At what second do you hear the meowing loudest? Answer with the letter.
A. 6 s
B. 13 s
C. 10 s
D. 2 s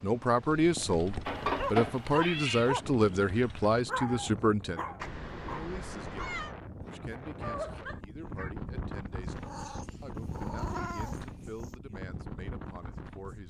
D.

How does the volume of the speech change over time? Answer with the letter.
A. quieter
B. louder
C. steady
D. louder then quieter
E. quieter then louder
A.